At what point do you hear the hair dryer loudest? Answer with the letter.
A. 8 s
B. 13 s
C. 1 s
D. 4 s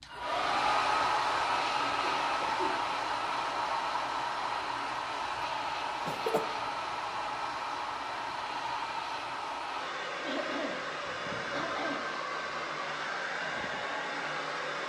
C.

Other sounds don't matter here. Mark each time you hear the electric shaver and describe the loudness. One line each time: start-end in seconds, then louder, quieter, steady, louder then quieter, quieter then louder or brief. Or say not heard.
not heard.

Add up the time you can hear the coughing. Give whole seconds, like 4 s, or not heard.
3 s.